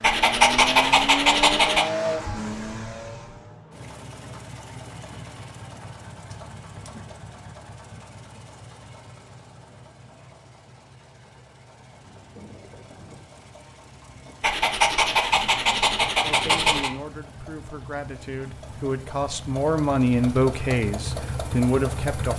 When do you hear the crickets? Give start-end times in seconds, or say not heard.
not heard.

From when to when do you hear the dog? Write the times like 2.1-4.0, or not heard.
0.0-1.9, 14.4-16.9.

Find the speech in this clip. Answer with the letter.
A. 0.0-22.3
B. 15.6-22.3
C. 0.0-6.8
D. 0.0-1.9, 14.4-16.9
B.